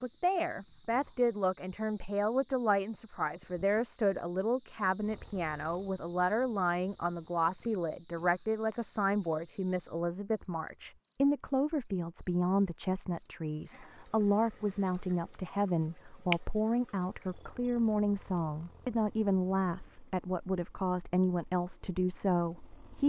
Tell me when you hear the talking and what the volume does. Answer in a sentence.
You can hear the talking from 0.0 to 23.0 s, at a steady volume.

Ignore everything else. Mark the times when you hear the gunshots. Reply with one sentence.
The gunshots can't be heard in this clip.